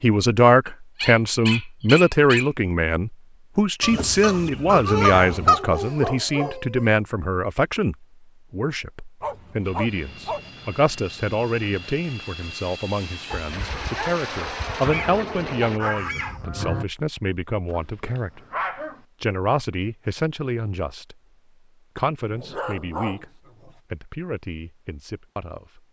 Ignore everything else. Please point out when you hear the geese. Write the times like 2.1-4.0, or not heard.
3.8-5.6, 14.8-16.9.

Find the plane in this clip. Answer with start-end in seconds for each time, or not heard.
9.6-15.8.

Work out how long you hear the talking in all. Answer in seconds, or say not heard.
24 s.